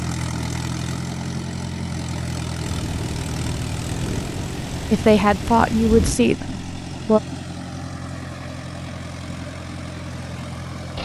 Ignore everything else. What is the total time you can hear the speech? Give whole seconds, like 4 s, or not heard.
2 s.